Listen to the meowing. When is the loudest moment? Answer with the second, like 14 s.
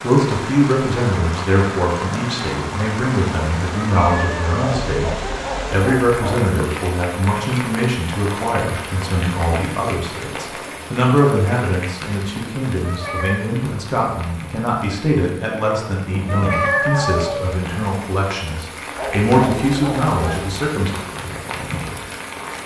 17 s.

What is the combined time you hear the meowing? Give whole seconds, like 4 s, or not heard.
3 s.